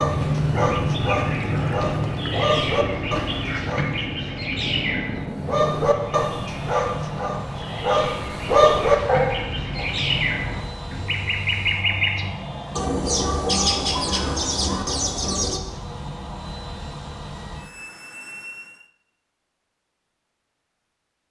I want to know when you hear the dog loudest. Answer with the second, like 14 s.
9 s.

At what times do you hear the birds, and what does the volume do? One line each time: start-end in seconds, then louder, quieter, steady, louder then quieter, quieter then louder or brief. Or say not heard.
0.0-15.6 quieter then louder.